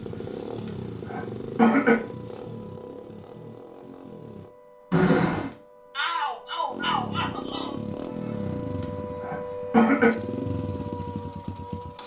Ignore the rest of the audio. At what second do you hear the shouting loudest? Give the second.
6 s.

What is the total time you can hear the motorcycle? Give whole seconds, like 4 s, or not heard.
10 s.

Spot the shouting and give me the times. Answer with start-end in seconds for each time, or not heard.
5.9-7.8.